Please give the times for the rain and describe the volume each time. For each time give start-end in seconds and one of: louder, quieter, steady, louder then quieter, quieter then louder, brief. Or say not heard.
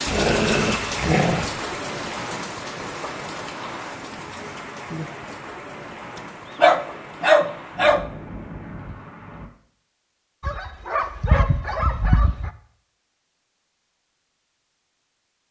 0.0-9.5 quieter.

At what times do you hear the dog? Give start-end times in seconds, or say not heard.
0.1-1.6, 6.5-8.1, 10.4-12.5.